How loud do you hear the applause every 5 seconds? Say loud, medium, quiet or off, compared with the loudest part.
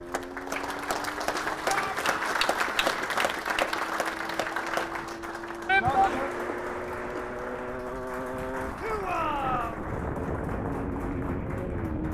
loud, medium, quiet.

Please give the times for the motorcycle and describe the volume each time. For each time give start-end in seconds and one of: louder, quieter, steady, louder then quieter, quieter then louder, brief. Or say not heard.
0.0-12.0 louder.